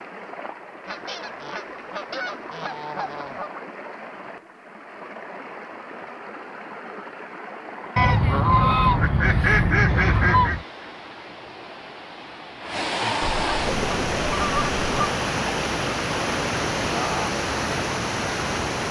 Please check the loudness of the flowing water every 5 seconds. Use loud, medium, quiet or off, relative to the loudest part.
quiet, quiet, loud, loud.